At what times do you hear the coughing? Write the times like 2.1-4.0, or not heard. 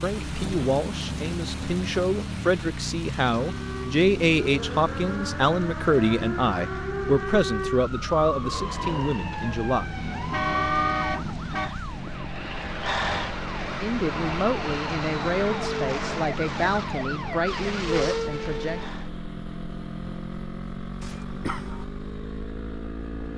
21.0-21.9.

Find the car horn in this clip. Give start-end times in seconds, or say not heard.
9.9-11.7.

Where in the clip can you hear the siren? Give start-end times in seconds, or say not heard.
3.4-19.1.